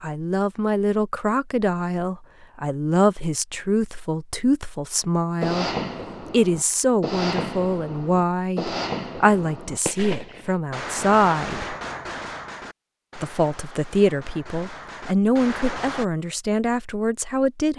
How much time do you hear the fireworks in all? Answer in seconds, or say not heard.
11 s.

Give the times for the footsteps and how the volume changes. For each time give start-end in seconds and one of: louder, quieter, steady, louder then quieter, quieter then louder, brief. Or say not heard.
not heard.